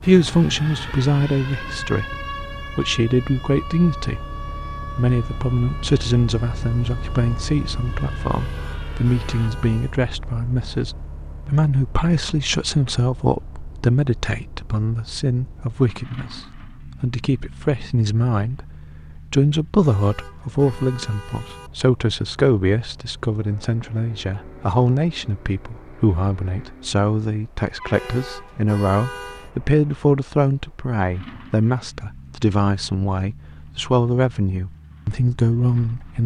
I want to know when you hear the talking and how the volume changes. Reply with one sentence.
You can hear the talking from 0.0 to 36.2 s, at a steady volume.